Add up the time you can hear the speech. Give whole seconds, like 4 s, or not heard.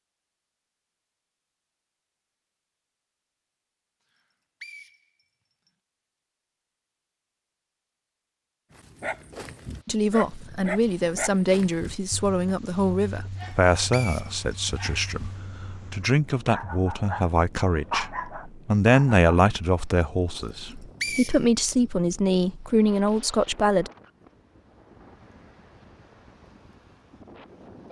14 s.